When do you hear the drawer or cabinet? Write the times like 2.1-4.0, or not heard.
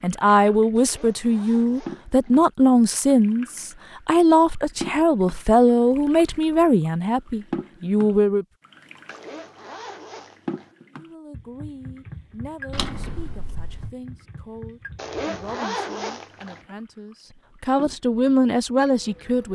12.7-13.9.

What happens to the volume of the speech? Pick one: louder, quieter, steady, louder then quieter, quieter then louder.
quieter then louder.